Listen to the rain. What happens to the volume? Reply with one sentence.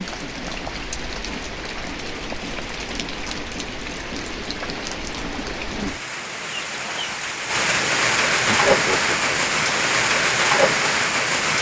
The volume of the rain goes up.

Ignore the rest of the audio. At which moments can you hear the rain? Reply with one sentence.
The rain can be heard from 0.0 to 11.5 s.